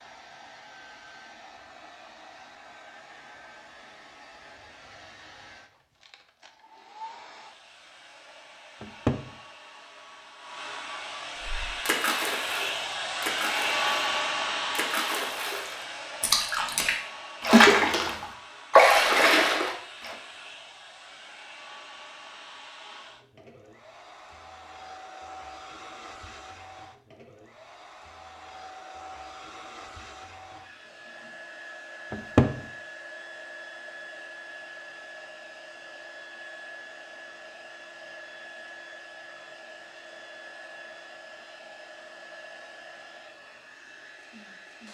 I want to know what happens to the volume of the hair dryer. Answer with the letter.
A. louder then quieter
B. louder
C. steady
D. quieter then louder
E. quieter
A.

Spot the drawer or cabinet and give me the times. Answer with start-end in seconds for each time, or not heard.
8.8-9.2, 32.1-32.5.